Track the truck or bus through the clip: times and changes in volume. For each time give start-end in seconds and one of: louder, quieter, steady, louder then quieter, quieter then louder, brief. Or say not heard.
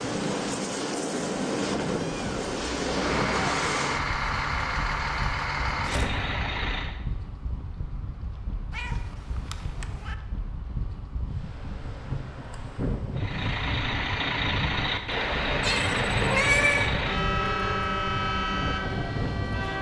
2.9-7.0 steady
13.2-19.7 steady.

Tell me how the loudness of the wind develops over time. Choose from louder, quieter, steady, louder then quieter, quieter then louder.
quieter then louder.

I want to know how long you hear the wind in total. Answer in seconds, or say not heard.
20 s.